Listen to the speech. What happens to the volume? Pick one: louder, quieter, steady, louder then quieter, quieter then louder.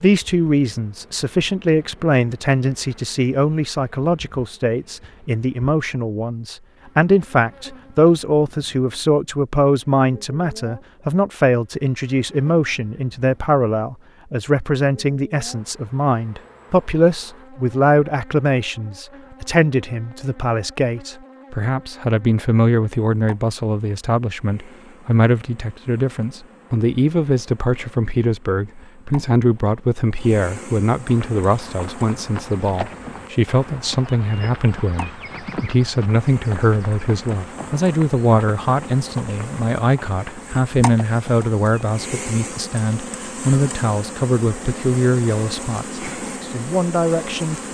steady.